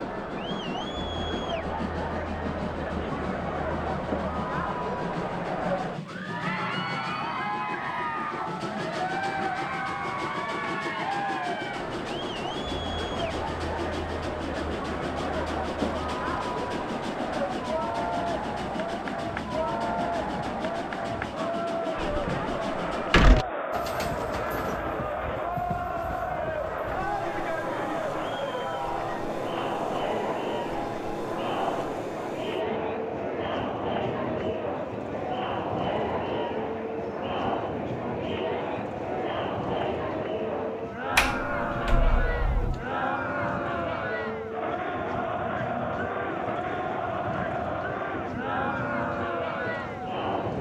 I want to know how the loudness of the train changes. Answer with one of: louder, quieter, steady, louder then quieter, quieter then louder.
steady.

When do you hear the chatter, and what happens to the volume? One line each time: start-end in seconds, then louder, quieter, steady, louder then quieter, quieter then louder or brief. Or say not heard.
0.0-50.5 steady.